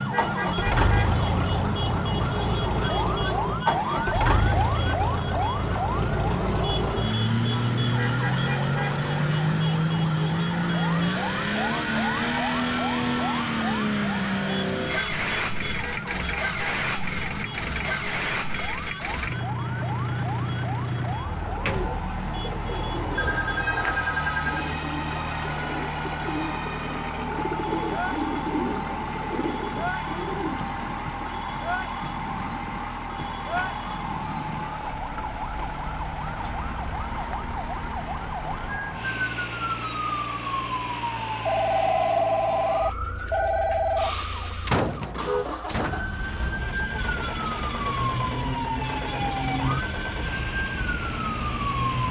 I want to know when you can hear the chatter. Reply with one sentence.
The chatter can't be heard in this clip.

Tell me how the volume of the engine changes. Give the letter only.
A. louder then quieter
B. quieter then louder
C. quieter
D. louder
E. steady
C.